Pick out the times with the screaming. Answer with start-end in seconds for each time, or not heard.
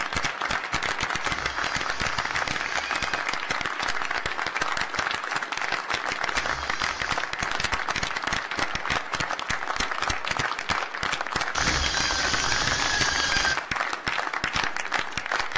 1.2-3.2, 6.3-7.3, 11.5-13.6.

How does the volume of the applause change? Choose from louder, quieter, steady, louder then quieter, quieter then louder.
steady.